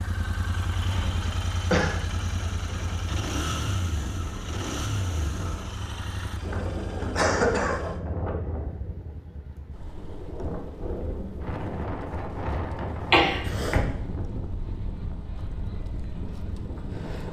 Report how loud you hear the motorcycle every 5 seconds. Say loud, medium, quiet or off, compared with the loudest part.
loud, medium, quiet, medium.